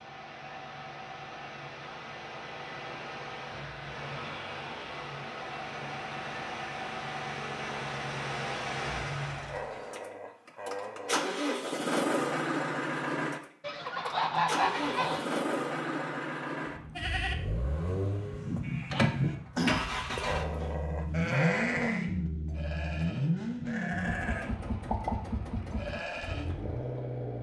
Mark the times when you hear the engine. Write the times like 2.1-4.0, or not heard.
0.0-27.3.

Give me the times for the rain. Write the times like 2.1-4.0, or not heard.
not heard.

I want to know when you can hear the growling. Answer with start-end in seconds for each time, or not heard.
9.4-11.3, 20.2-22.1.